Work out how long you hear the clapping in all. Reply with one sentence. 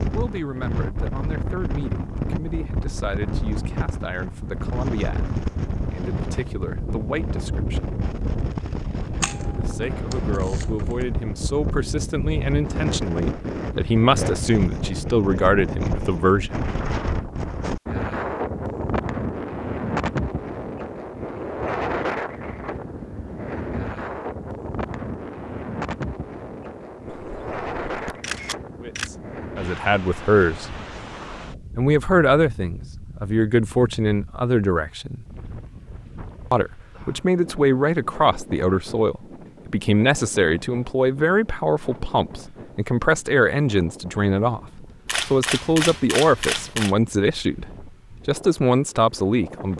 The clapping can't be heard in this clip.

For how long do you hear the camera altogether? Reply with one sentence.
You can hear the camera for 6 seconds altogether.